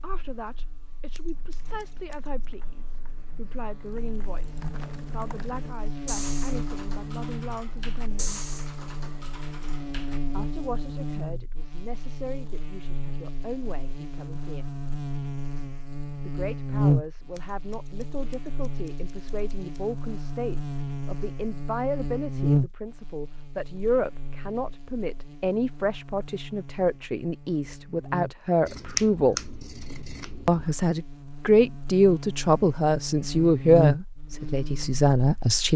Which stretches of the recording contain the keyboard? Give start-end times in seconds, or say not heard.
1.3-10.2.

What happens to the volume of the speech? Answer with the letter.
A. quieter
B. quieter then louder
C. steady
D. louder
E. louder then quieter
D.